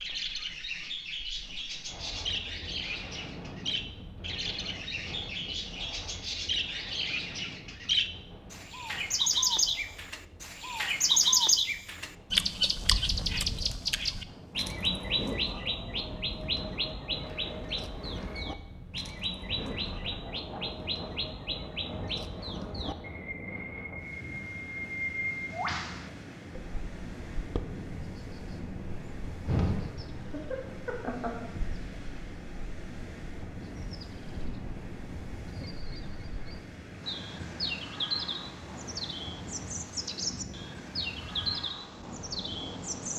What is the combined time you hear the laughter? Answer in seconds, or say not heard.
2 s.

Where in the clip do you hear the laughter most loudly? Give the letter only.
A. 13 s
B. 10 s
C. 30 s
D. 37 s
C.